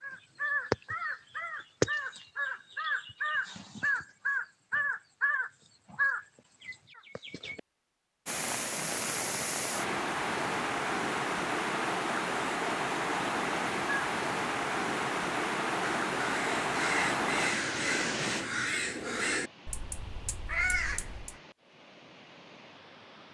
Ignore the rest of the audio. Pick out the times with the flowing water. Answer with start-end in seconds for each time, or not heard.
8.2-23.2.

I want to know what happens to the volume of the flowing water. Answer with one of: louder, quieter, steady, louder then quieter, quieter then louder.
quieter.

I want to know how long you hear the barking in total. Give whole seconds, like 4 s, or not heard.
not heard.